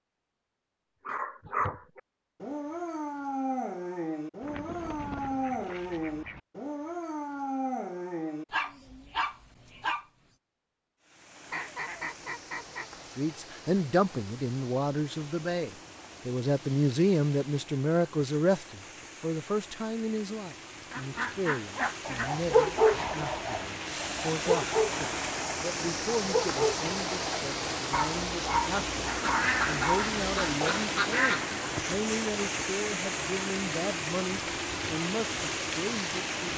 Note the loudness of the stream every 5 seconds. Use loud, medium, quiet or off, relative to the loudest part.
off, off, quiet, quiet, medium, loud, loud, loud.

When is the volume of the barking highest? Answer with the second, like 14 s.
23 s.